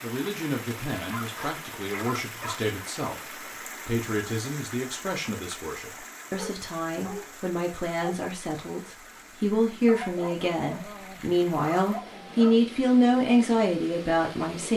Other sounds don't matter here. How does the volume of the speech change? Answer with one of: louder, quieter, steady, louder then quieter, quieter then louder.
louder.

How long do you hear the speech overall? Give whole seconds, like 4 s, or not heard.
15 s.